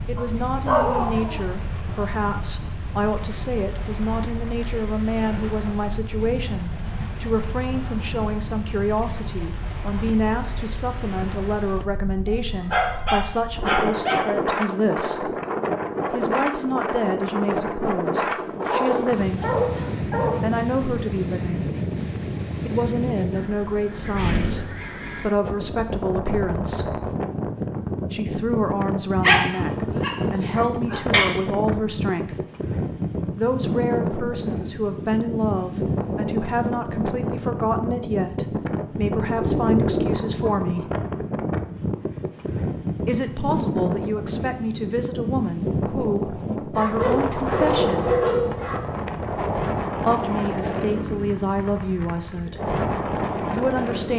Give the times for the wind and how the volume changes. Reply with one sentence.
The wind can be heard from 0.0 to 54.1 s, getting louder.